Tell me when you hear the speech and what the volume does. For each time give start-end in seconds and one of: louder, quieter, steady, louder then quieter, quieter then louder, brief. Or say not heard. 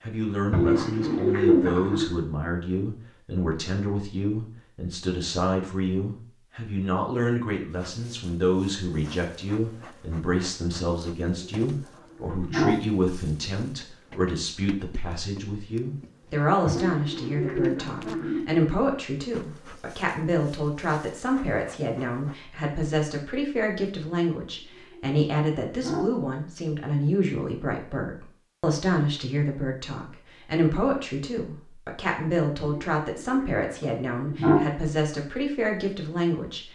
0.0-36.7 steady.